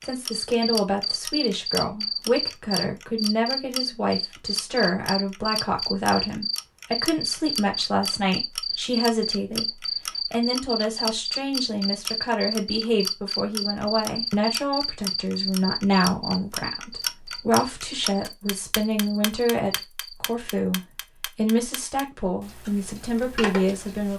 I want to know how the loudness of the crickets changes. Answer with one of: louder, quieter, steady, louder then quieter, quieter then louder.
quieter.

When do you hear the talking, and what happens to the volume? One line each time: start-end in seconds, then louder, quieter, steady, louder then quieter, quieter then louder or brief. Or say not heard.
0.0-24.1 steady.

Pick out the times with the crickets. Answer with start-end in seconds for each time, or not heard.
0.0-20.3.